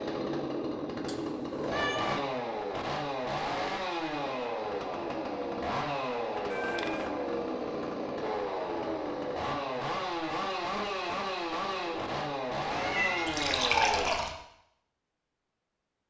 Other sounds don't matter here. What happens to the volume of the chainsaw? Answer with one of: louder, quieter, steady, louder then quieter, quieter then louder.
steady.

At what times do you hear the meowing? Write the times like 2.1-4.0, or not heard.
1.1-2.2, 6.5-7.1, 12.7-14.3.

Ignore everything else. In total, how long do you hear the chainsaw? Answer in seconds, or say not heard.
14 s.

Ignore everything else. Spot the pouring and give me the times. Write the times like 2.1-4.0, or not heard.
13.2-14.3.